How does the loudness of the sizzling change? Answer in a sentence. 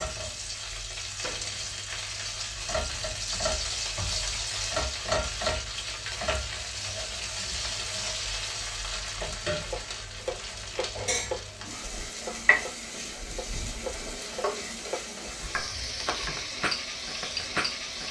The volume of the sizzling stays about the same.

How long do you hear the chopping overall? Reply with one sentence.
You can hear the chopping for 7 seconds altogether.